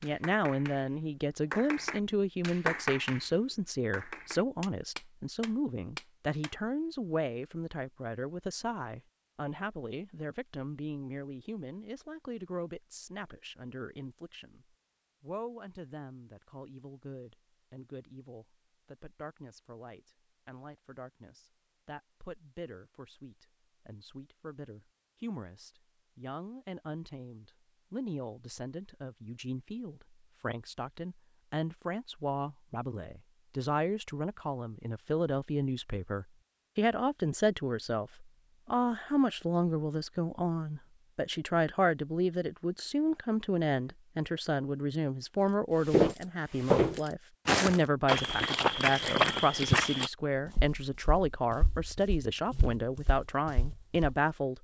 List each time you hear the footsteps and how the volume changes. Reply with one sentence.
The footsteps can be heard from 45.9 to 54.1 s, getting quieter then louder.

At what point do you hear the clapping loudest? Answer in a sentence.
The volume of the clapping peaks at 3 seconds.